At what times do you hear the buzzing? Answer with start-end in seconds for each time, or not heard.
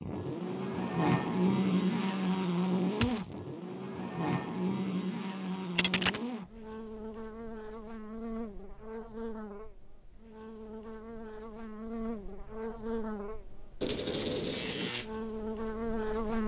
0.0-16.4.